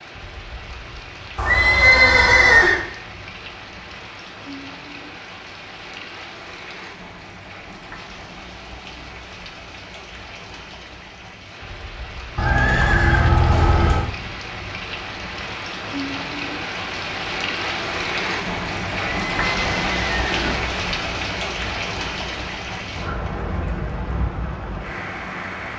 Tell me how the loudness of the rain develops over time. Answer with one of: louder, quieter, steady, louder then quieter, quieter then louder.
louder.